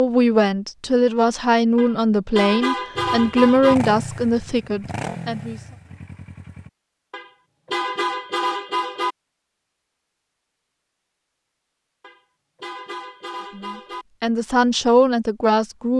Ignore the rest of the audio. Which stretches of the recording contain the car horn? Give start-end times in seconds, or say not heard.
1.8-3.8, 7.1-9.2, 12.0-14.1.